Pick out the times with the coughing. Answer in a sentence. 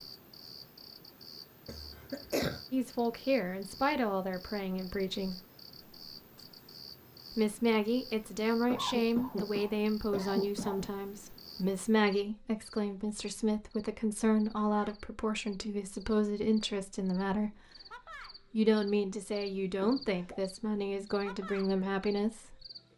The coughing can be heard from 1.6 to 2.6 s, from 8.7 to 10.9 s and from 19.8 to 20.4 s.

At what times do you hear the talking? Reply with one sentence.
The talking can be heard from 2.7 to 5.4 s, from 7.3 to 17.6 s and from 18.4 to 22.6 s.